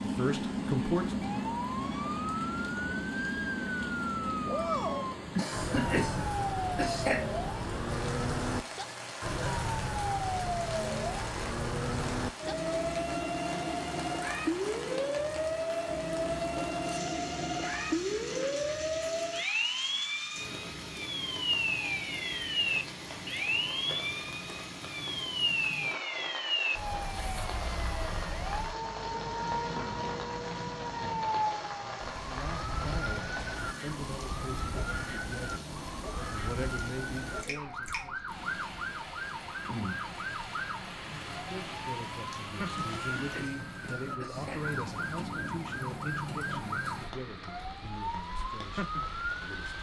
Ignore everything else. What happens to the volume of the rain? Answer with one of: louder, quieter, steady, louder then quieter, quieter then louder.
steady.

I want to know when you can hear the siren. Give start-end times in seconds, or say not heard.
0.0-49.7.